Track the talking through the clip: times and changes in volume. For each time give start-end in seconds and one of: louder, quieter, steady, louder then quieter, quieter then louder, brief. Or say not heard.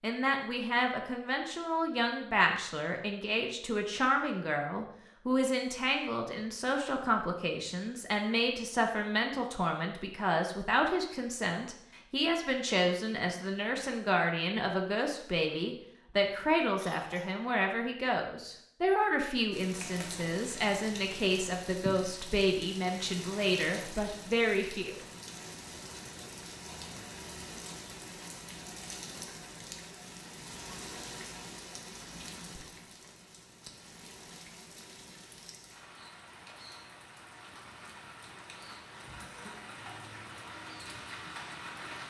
0.0-25.1 steady.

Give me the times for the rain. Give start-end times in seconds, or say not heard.
19.5-42.0.